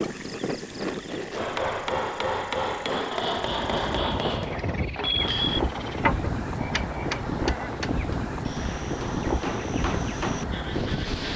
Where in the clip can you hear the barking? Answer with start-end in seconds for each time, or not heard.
not heard.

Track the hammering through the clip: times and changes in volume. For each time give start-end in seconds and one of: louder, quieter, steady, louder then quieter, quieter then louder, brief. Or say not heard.
1.4-11.2 quieter then louder.